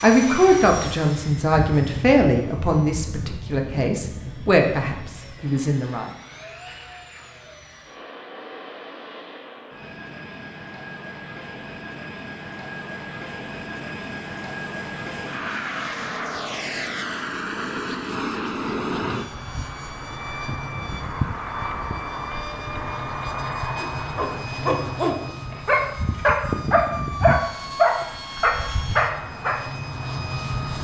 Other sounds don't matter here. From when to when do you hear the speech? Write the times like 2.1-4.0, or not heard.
0.0-6.1.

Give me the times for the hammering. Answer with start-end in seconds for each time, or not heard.
not heard.